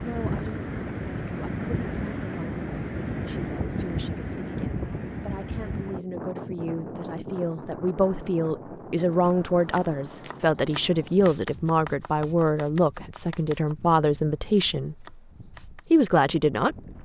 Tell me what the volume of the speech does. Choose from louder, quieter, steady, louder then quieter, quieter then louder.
louder.